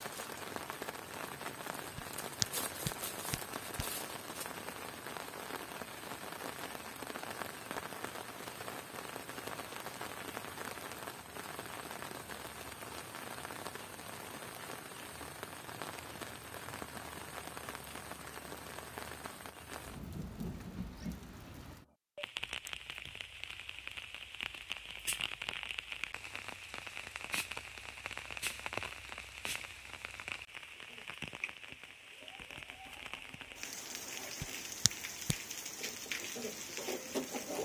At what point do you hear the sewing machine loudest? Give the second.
37 s.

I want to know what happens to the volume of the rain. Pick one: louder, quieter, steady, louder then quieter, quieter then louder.
steady.